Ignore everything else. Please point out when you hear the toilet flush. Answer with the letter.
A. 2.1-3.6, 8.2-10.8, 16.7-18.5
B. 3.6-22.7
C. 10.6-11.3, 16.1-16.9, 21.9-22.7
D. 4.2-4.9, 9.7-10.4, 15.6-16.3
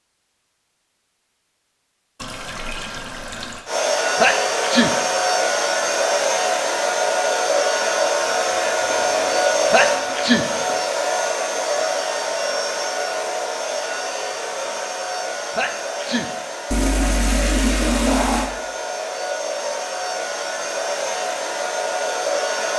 A.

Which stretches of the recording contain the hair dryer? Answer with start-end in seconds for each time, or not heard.
3.6-22.7.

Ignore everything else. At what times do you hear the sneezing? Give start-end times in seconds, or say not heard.
4.2-4.9, 9.7-10.4, 15.6-16.3.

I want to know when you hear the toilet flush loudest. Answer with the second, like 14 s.
18 s.